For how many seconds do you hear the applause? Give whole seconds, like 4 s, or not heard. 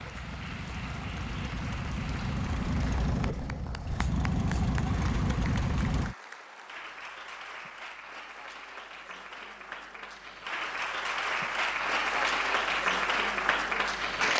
14 s.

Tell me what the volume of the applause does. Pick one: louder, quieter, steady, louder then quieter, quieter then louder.
louder.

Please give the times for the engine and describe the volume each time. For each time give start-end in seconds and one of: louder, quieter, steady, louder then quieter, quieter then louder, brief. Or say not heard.
0.0-6.2 louder.